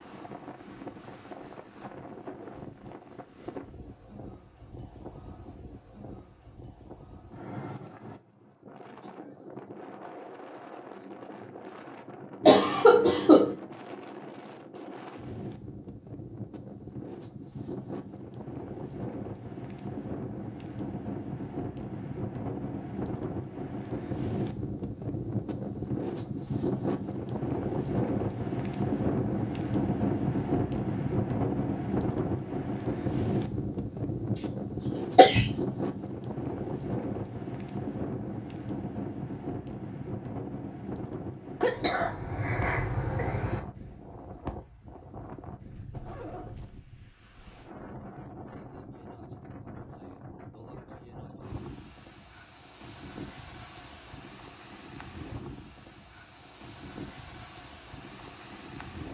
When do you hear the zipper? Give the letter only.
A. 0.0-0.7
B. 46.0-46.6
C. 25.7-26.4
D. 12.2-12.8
B.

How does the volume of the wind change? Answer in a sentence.
The volume of the wind goes up, then down.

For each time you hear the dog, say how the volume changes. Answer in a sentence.
The dog can't be heard in this clip.